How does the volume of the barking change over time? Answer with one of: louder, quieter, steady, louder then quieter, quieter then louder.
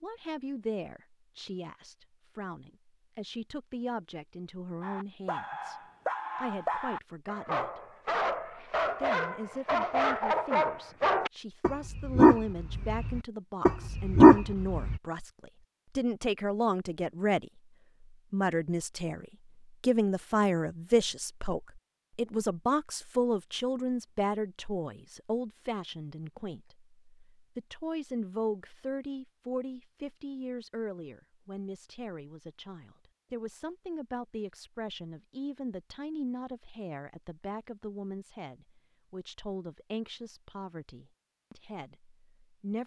louder.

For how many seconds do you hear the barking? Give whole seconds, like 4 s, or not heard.
10 s.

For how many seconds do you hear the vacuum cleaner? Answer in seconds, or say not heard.
not heard.